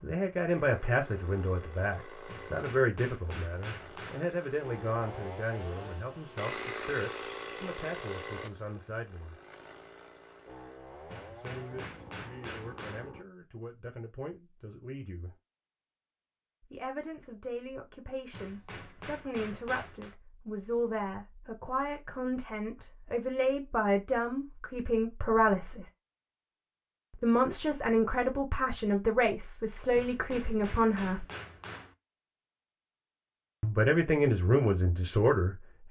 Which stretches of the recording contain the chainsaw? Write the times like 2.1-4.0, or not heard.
0.0-13.2.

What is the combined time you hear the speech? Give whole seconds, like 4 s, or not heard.
29 s.